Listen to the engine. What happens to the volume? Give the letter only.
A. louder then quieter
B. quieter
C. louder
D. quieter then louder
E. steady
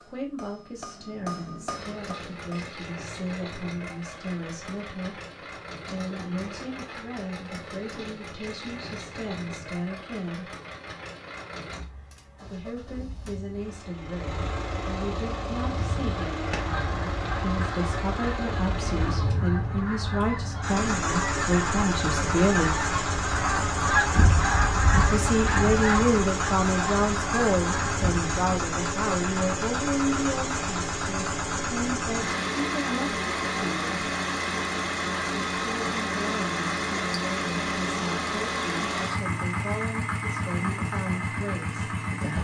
C.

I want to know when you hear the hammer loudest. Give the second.
1 s.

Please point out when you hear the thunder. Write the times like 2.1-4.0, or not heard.
not heard.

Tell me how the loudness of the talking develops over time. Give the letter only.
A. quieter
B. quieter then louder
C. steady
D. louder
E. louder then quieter
E.